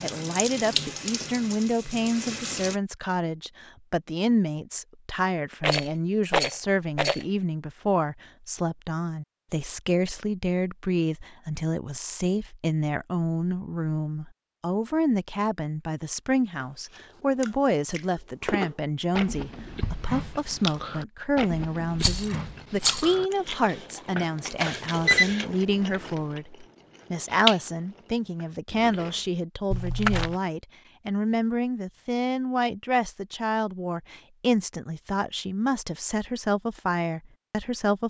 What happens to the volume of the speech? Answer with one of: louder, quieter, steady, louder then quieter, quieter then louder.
steady.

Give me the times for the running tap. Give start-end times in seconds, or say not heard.
0.0-2.8.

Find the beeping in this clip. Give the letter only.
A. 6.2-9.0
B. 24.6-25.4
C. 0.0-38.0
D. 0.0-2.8
B.